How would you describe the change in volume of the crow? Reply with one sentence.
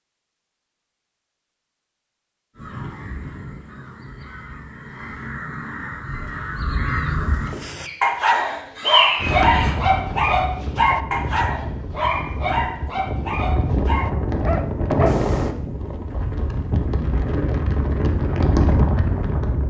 The loudness of the crow goes up.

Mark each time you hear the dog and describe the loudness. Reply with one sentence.
The dog can be heard from 7.5 to 15.2 s, getting quieter.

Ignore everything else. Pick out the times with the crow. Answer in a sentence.
You can hear the crow from 2.5 to 9.8 s.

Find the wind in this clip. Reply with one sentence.
The wind can be heard from 9.2 to 19.6 s.